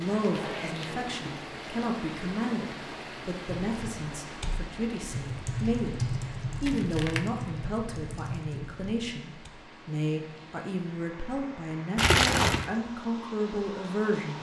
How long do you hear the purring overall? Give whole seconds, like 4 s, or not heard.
not heard.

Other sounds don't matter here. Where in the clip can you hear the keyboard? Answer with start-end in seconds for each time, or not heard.
3.5-9.5.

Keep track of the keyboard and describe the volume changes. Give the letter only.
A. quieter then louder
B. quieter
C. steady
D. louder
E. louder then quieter
E.